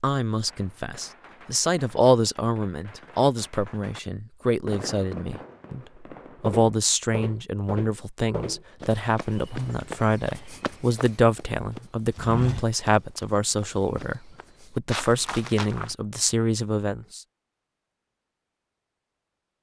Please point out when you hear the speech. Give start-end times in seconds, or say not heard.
0.0-17.2.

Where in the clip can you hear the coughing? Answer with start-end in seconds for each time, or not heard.
not heard.